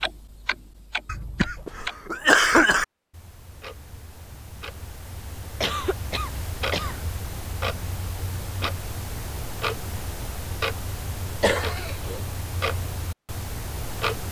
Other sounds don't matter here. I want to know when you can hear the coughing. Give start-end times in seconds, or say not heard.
1.1-2.9, 5.6-7.0, 11.4-12.2.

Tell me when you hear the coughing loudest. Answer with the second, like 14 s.
2 s.